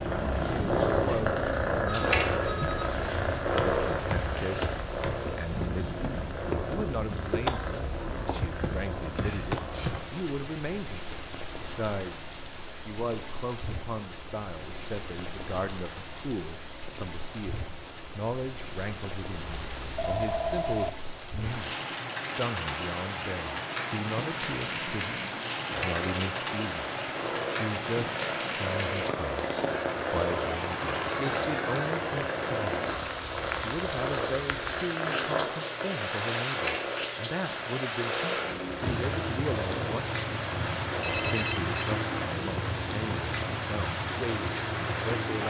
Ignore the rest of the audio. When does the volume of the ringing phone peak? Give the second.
41 s.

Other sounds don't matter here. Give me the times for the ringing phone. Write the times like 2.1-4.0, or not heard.
1.8-3.0, 19.4-20.9, 41.0-42.0.